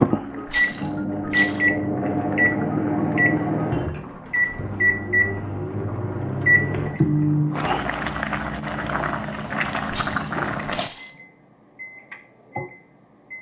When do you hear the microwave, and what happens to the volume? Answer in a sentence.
The microwave can be heard from 0.0 to 13.3 s, getting quieter.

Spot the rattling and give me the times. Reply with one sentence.
You can hear the rattling from 0.5 to 1.6 s and from 9.9 to 11.1 s.